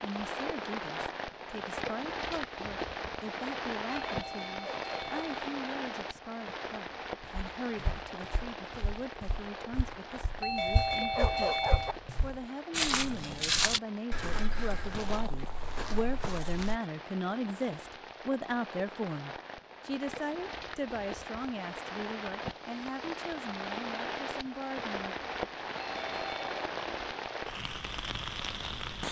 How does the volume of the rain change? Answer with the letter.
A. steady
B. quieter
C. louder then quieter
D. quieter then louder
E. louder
D.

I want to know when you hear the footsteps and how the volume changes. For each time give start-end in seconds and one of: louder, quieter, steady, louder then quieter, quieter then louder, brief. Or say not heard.
7.2-16.8 louder then quieter.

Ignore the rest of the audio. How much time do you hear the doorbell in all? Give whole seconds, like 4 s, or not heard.
4 s.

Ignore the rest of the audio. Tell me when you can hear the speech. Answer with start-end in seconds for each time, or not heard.
0.0-25.1.